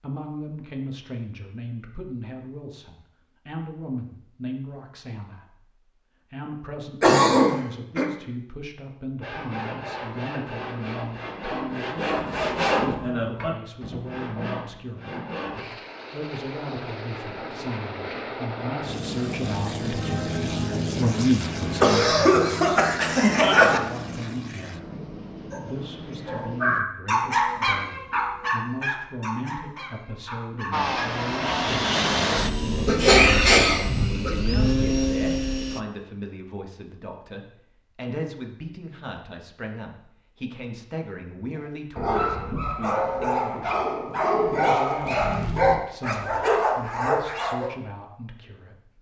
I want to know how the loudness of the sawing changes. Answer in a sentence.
The volume of the sawing goes up, then down.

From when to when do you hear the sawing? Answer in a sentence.
The sawing can be heard from 9.2 to 15.7 s.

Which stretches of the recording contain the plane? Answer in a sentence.
The plane can be heard from 15.6 to 26.8 s and from 30.7 to 35.8 s.